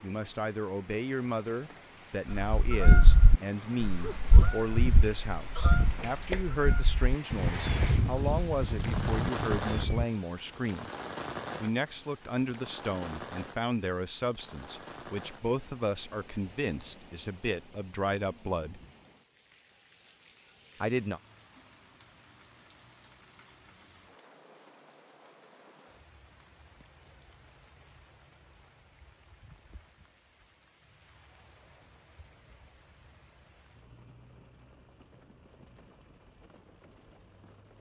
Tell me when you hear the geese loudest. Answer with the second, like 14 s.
3 s.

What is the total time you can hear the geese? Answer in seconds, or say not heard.
8 s.